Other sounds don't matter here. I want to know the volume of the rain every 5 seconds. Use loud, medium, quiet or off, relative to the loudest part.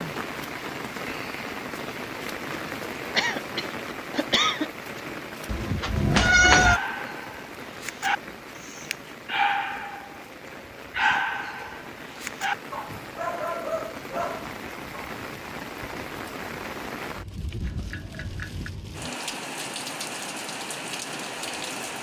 loud, medium, medium, loud, loud.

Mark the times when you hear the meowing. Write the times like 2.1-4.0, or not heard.
5.5-6.8.